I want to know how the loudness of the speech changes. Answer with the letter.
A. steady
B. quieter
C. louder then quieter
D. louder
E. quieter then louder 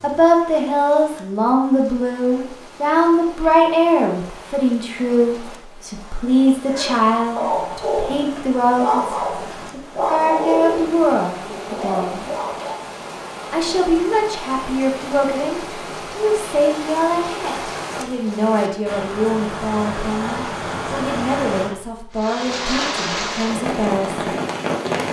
B.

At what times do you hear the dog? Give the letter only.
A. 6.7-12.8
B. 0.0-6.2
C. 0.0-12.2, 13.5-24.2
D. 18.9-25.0
A.